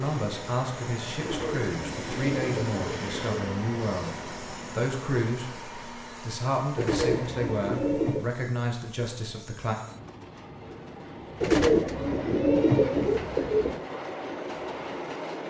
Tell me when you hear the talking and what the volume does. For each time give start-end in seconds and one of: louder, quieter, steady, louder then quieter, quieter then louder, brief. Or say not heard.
0.0-9.8 steady.